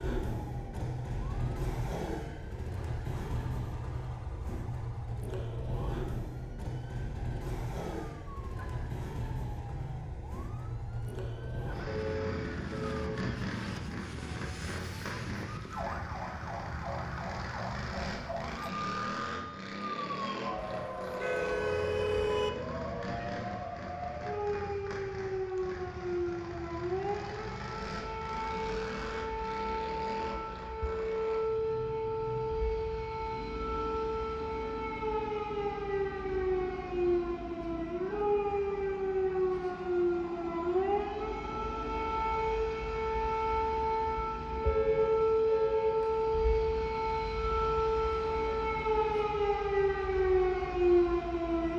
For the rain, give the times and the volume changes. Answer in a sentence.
The rain can't be heard in this clip.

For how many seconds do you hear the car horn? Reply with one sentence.
The car horn can be heard for 5 seconds in total.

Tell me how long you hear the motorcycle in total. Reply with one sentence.
You can hear the motorcycle for 52 seconds altogether.